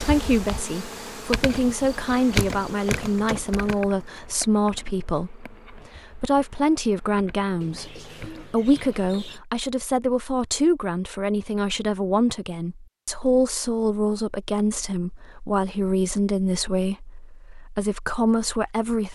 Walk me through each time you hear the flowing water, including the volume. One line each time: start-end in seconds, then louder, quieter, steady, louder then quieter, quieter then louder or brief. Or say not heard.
not heard.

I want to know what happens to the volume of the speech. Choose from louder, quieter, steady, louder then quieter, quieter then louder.
steady.